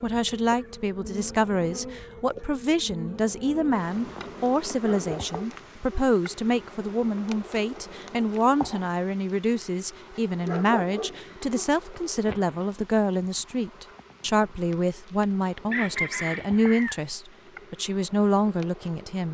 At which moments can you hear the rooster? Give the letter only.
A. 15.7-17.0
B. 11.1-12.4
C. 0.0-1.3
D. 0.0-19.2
A.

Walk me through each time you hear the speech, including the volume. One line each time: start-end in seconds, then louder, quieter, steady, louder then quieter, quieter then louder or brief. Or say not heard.
0.0-19.2 steady.